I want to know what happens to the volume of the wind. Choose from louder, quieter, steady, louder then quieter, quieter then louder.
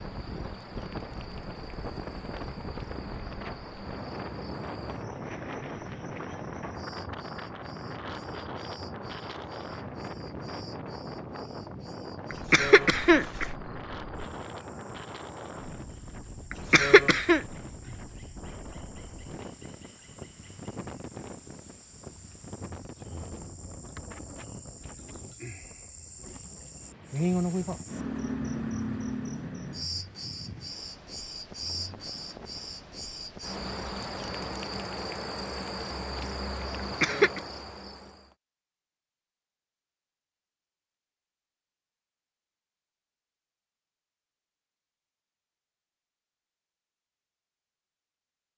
quieter.